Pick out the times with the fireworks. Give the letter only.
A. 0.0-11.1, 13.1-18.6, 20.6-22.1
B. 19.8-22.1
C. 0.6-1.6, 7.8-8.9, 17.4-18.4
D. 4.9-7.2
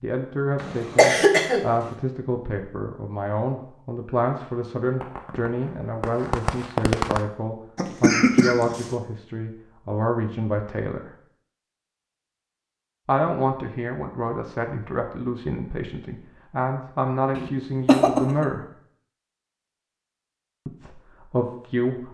D.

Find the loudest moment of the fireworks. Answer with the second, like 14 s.
7 s.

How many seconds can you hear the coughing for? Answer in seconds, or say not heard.
3 s.